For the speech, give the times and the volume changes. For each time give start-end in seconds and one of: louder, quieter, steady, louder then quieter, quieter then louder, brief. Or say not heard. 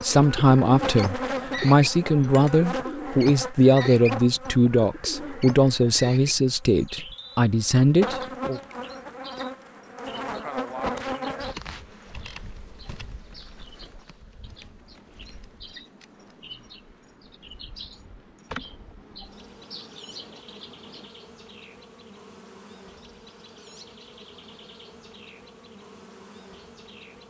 0.0-8.6 steady.